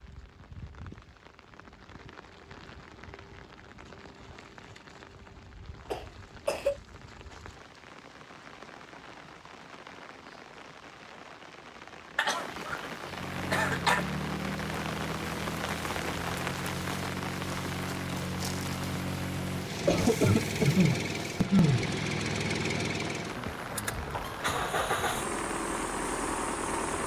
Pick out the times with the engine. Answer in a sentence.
The engine can be heard from 13.0 to 27.0 s.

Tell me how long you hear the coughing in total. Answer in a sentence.
You can hear the coughing for 4 seconds altogether.